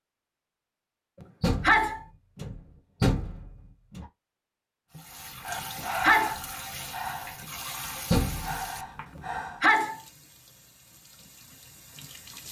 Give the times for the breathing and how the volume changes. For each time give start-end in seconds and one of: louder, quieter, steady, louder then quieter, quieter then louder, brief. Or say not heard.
4.9-9.6 quieter then louder.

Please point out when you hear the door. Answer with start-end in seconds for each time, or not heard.
1.4-4.0, 8.1-8.7.